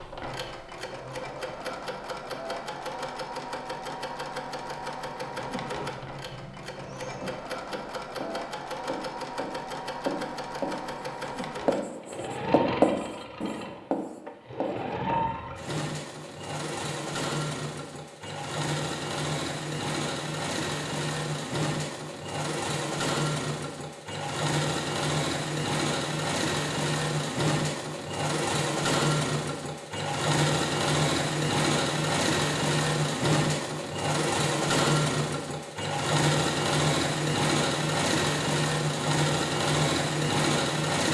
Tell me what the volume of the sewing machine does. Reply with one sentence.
The loudness of the sewing machine goes up.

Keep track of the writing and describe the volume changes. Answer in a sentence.
The loudness of the writing goes up, then down.